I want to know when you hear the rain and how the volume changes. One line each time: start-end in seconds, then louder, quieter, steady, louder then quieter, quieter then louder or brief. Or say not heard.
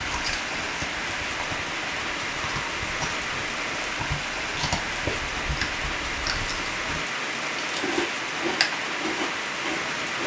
0.0-10.2 steady.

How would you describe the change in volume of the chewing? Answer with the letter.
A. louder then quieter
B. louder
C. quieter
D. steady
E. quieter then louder
B.